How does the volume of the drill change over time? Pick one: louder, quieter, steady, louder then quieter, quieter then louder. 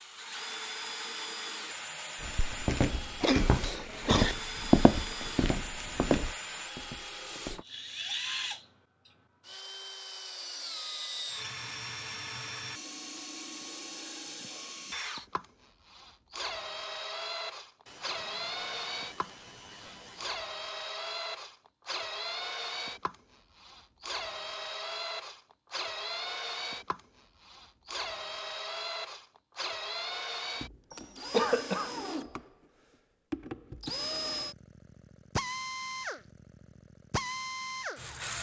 steady.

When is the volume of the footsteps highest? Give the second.
5 s.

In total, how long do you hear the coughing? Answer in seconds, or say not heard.
4 s.